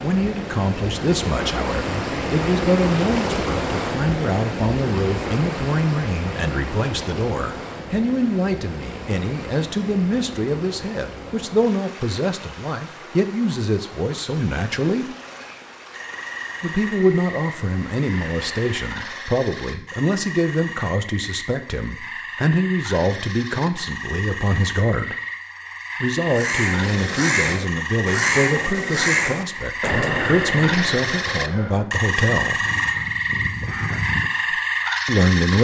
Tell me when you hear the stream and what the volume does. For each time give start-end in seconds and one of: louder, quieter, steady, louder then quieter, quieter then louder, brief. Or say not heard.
0.0-19.4 quieter.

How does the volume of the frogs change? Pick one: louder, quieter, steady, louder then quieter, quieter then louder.
louder.